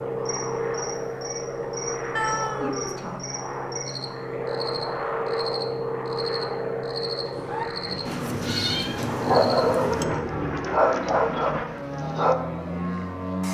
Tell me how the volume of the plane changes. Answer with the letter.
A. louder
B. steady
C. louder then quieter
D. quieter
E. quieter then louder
B.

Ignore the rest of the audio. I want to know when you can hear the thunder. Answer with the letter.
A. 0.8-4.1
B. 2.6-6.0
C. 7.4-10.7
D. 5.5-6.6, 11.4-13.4
C.